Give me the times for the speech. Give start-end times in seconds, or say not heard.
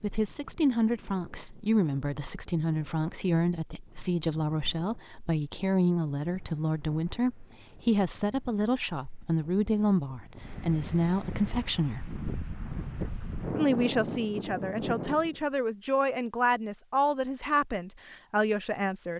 0.0-12.1, 13.6-19.1.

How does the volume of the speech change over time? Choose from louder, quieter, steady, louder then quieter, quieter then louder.
steady.